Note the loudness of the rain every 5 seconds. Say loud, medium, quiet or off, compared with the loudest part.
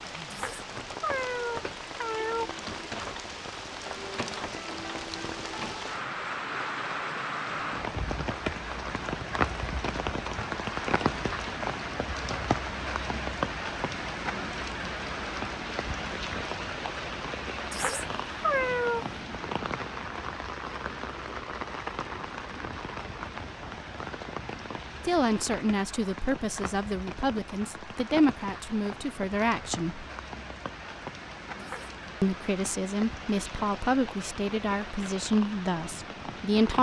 medium, loud, loud, loud, medium, medium, medium, medium.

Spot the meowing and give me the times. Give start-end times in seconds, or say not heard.
0.3-2.6, 17.7-19.1, 31.6-32.0.